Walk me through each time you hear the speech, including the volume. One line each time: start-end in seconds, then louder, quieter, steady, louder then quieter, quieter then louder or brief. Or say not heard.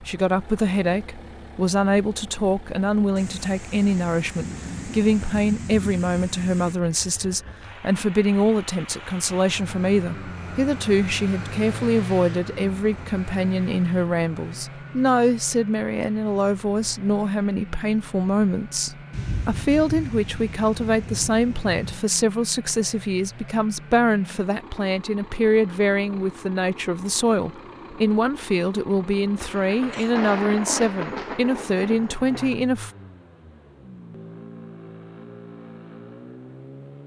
0.0-32.9 steady.